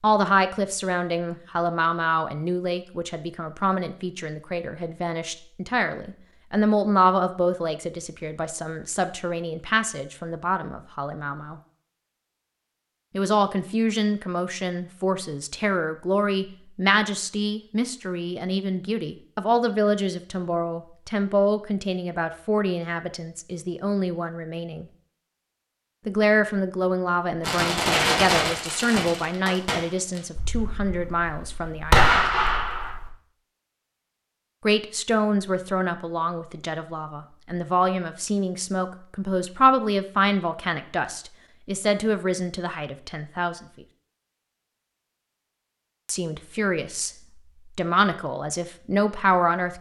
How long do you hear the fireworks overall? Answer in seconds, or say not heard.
6 s.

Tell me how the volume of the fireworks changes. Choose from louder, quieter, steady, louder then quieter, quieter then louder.
quieter then louder.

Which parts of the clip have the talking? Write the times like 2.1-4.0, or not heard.
0.0-11.6, 13.1-24.9, 26.1-32.3, 34.6-43.6, 46.0-47.1, 47.8-49.7.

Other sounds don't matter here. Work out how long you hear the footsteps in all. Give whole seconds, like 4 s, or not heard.
not heard.